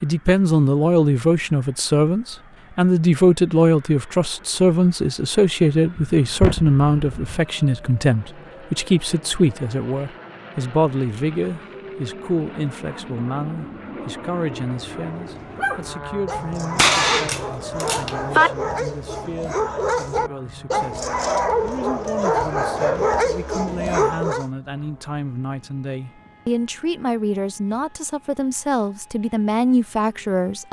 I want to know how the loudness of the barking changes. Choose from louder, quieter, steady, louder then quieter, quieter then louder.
louder.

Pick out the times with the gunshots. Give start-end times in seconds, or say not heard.
6.0-7.4, 16.8-18.5.